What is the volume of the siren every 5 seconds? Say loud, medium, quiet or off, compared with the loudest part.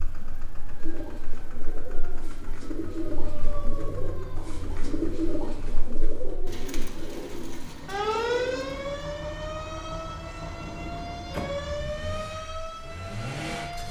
quiet, loud, medium.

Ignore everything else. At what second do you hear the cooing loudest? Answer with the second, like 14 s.
5 s.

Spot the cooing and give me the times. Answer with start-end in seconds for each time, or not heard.
0.8-9.1.